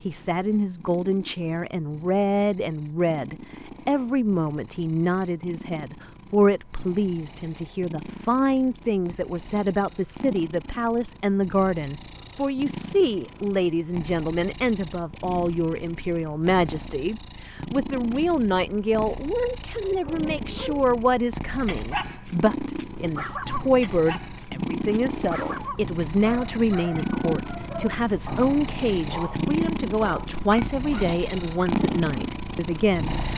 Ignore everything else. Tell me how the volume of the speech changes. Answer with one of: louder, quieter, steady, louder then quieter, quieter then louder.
steady.